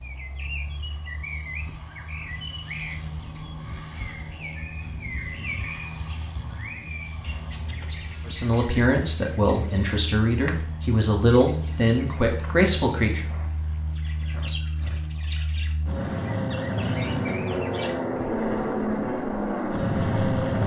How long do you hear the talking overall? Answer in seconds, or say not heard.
5 s.